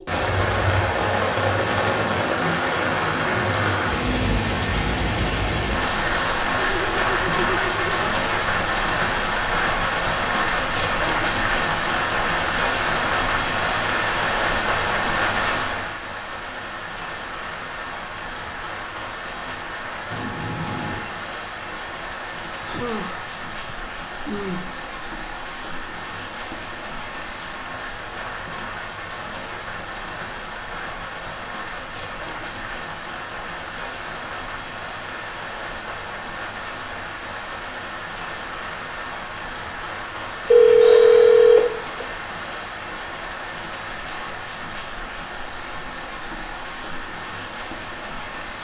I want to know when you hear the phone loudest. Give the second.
41 s.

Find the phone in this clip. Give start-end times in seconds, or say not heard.
20.1-21.1, 40.5-42.0.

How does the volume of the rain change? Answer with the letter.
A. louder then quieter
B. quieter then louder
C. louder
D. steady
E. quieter
E.